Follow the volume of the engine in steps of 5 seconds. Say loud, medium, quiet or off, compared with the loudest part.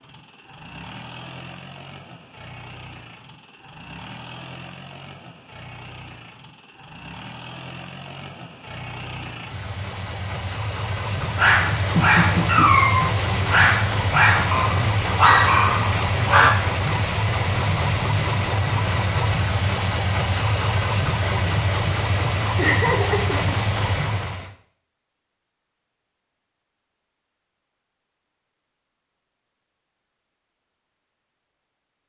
quiet, quiet, loud, loud, loud, off, off.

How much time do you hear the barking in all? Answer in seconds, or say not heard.
5 s.